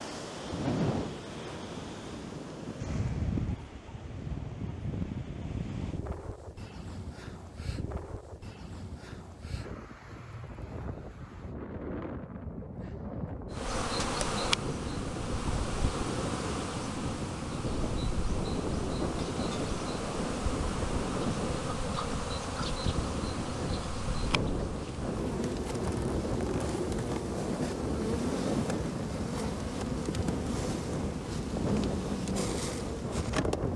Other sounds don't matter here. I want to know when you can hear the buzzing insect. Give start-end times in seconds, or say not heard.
13.5-33.7.